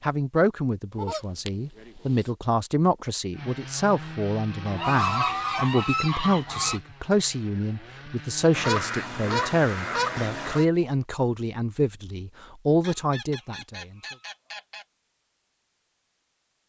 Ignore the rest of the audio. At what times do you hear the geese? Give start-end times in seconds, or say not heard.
0.9-2.1, 4.7-6.8, 8.5-10.7, 12.8-14.8.